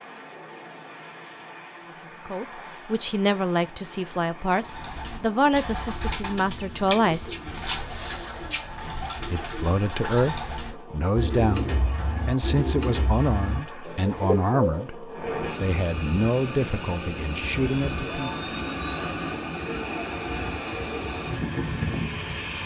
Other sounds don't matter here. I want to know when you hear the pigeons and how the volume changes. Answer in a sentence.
You can hear the pigeons from 4.7 to 14.8 s, at a steady volume.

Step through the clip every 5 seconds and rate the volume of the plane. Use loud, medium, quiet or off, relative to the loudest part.
quiet, quiet, quiet, loud, loud.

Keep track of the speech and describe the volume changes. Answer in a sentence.
The loudness of the speech stays about the same.